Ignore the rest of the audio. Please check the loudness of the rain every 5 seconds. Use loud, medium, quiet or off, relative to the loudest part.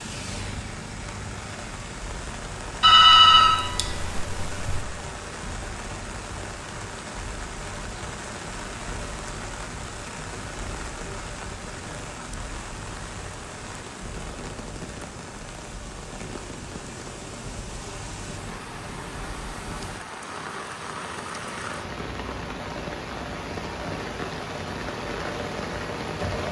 medium, medium, medium, medium, loud, loud.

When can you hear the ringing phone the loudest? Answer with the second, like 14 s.
3 s.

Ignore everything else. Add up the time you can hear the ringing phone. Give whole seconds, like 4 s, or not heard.
2 s.